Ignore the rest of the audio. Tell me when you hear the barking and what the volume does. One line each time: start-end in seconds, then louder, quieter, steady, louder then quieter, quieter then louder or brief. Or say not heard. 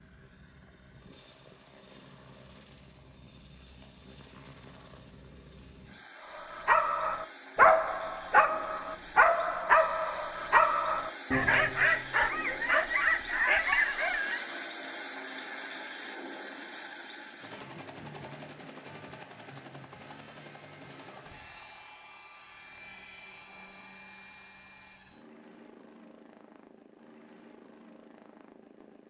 6.3-14.4 steady.